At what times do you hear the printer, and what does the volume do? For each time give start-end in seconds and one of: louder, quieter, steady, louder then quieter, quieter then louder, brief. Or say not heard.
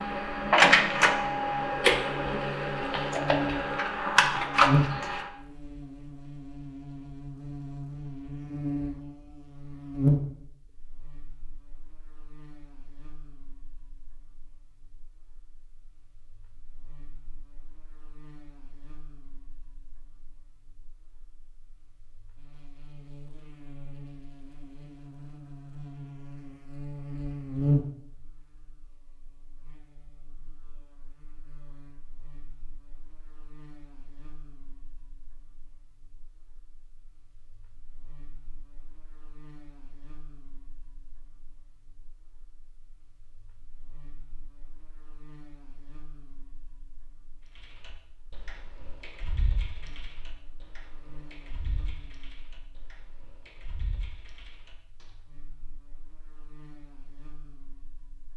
0.0-5.3 quieter then louder.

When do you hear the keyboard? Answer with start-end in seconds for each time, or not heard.
47.5-55.0.